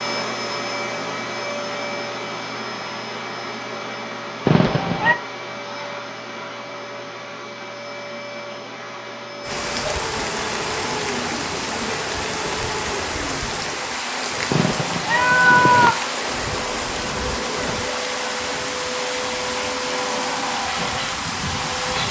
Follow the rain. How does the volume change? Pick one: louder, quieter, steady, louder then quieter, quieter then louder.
steady.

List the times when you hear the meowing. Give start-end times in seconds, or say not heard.
4.5-5.2, 14.5-15.9.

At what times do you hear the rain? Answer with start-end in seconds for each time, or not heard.
9.4-22.0.